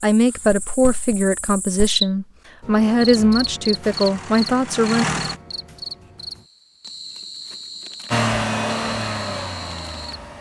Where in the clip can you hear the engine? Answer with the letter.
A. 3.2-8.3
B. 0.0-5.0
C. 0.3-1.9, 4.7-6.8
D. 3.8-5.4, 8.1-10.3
D.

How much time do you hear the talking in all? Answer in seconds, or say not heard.
5 s.